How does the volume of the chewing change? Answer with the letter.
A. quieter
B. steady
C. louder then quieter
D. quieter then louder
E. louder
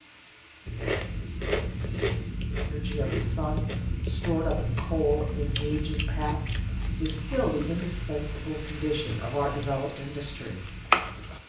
D.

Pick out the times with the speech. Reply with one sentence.
The speech can be heard from 2.6 to 10.7 s.